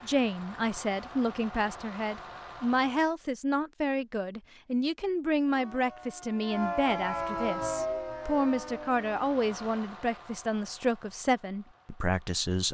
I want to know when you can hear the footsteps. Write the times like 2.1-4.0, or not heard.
not heard.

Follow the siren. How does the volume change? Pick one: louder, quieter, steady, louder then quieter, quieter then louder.
louder then quieter.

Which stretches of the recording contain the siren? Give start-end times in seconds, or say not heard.
5.5-9.8.